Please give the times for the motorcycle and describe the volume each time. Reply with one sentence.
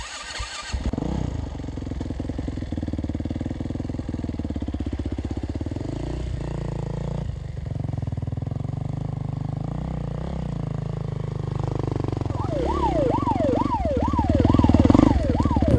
You can hear the motorcycle from 0.0 to 15.7 s, getting louder.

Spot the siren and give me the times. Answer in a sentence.
The siren can be heard from 12.3 to 15.7 s.